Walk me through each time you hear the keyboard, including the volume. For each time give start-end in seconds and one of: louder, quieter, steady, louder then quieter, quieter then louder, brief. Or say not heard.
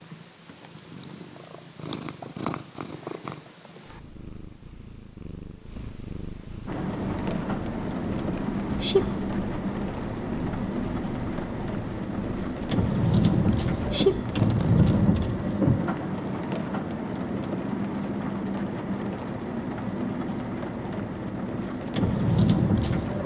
not heard.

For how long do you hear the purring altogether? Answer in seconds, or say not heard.
15 s.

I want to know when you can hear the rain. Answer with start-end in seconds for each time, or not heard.
6.7-23.2.